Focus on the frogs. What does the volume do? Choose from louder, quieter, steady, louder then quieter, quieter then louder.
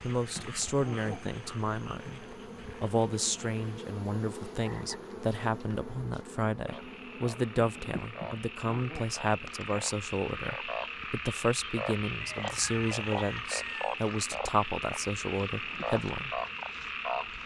louder.